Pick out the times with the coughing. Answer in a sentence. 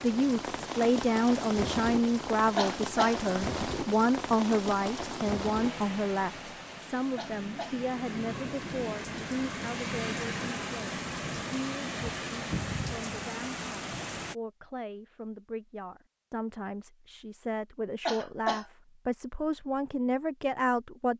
You can hear the coughing from 2.5 to 3.2 s, from 7.2 to 7.8 s and from 18.1 to 18.6 s.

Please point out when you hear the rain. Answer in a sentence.
The rain can be heard from 0.0 to 14.3 s.